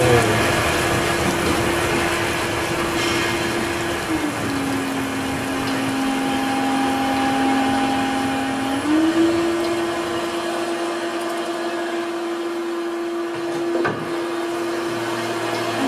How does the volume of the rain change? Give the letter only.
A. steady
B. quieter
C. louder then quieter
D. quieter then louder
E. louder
B.